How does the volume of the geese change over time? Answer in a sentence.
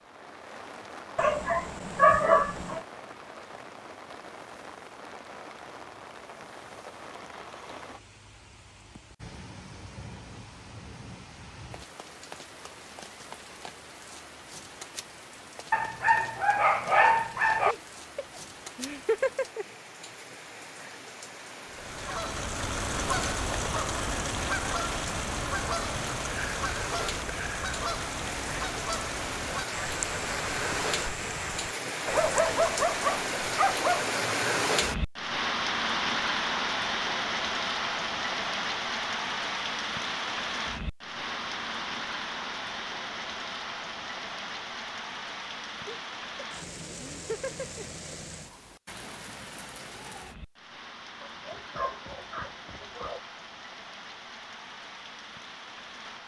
The volume of the geese goes down.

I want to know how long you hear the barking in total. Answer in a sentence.
The barking can be heard for 8 seconds in total.